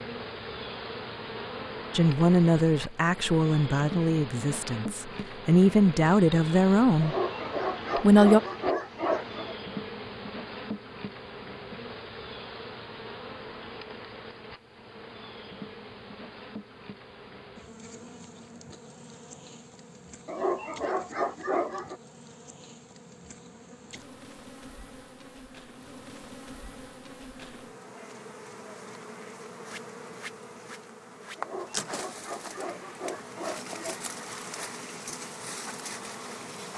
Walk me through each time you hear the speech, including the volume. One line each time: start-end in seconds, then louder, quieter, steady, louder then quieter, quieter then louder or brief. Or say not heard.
1.9-7.2 quieter then louder
8.0-8.4 brief.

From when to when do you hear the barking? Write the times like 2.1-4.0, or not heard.
7.0-9.6, 20.2-21.9, 31.4-34.0.